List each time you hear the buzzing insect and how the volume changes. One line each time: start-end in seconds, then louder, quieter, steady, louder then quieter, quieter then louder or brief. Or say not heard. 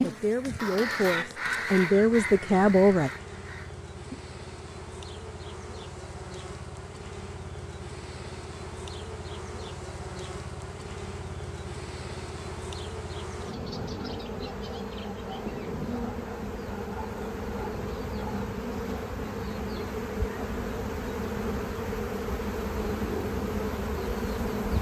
0.0-24.7 louder.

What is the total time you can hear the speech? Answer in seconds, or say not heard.
3 s.